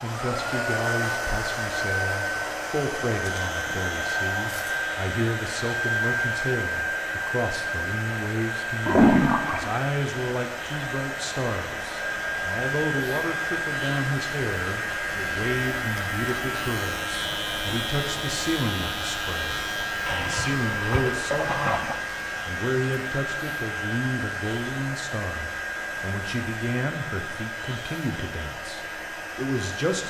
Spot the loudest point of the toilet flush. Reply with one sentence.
The volume of the toilet flush peaks at 9 seconds.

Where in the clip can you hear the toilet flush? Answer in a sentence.
You can hear the toilet flush from 8.8 to 9.8 s and from 20.1 to 21.9 s.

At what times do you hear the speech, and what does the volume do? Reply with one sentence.
The speech can be heard from 0.0 to 30.0 s, at a steady volume.